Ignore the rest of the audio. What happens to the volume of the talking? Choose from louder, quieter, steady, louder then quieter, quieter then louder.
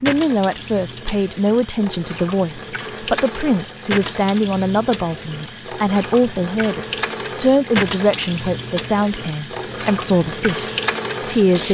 steady.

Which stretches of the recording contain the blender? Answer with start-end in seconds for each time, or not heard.
not heard.